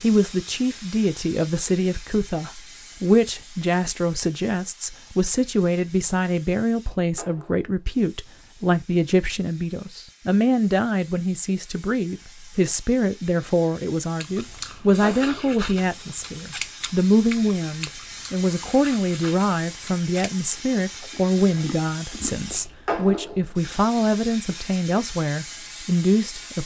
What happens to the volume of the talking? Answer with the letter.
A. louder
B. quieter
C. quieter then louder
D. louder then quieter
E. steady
E.